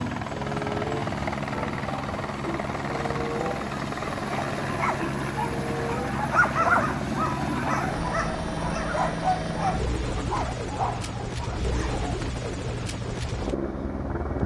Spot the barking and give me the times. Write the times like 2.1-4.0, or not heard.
4.2-12.2.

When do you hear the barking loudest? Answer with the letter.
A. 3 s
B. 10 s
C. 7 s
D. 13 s
C.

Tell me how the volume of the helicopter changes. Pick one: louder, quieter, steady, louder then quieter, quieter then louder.
steady.